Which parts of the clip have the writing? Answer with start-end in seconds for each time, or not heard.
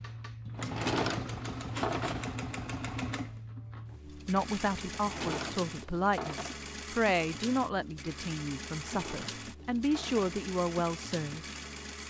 1.7-2.4.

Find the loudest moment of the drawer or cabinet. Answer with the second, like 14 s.
1 s.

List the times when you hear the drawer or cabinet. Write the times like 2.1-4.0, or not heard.
0.6-2.4, 4.9-6.5, 8.7-10.3.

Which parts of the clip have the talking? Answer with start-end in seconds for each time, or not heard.
4.0-11.4.